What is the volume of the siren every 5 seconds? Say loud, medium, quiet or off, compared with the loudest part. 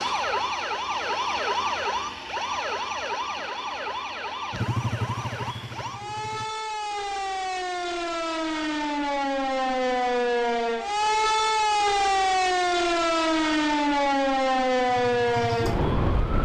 medium, medium, loud, loud.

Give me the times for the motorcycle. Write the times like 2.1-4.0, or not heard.
4.5-6.5, 14.8-16.4.